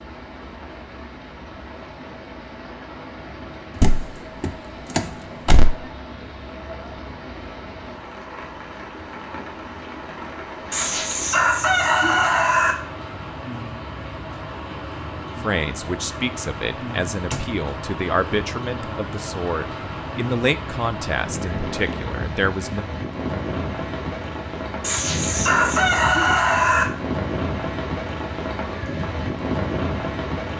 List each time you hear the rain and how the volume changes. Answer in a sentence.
The rain can be heard from 0.0 to 30.5 s, getting louder.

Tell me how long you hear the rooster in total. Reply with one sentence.
The rooster can be heard for 4 seconds in total.